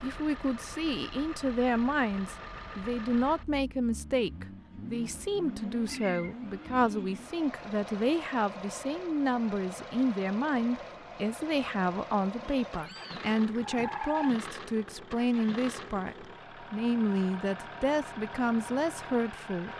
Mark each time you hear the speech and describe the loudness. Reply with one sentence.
You can hear the speech from 0.0 to 19.7 s, at a steady volume.